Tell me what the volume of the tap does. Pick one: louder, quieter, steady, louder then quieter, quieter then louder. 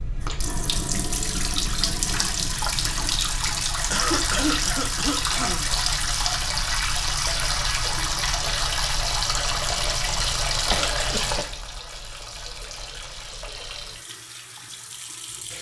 quieter.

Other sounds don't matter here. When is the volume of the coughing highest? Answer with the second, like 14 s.
4 s.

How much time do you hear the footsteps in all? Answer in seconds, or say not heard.
not heard.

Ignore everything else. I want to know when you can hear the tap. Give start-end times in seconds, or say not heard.
0.0-15.5.